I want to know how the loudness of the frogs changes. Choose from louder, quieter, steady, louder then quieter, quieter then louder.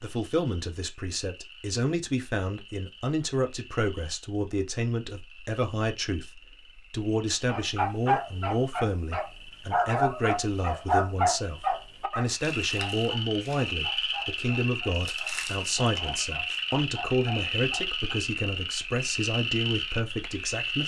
louder.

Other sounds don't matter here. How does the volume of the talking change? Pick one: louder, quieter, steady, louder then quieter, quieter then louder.
steady.